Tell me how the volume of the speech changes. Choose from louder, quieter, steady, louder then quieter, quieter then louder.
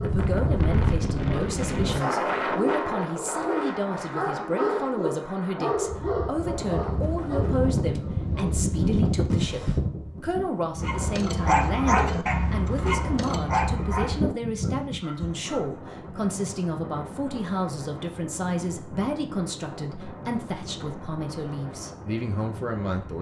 steady.